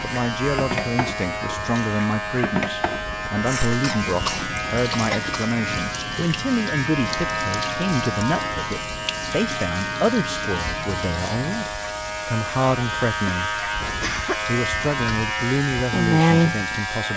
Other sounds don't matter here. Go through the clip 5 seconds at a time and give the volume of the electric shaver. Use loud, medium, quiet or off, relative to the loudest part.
medium, medium, medium, loud.